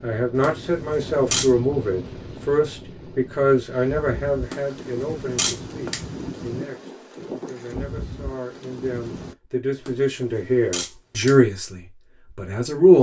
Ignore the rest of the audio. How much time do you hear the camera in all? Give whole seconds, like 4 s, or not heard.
4 s.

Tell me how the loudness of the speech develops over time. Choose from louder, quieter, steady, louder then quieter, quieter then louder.
quieter then louder.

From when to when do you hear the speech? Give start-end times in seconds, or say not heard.
0.0-12.9.